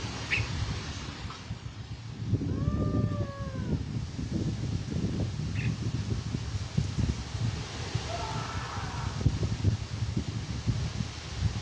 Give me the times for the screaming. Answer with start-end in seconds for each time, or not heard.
2.5-3.9, 8.1-9.2.